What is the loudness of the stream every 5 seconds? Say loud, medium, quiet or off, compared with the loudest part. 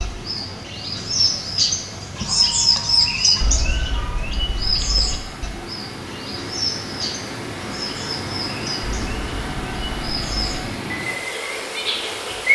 medium, loud, loud.